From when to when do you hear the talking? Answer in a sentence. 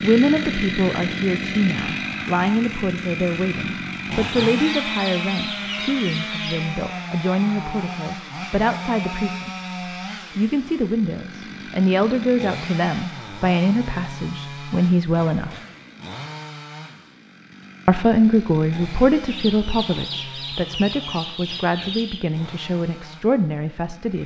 You can hear the talking from 0.0 to 9.5 s, from 10.3 to 15.5 s and from 17.9 to 24.2 s.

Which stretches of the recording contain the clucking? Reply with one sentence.
The clucking can be heard from 4.2 to 6.7 s and from 19.2 to 22.2 s.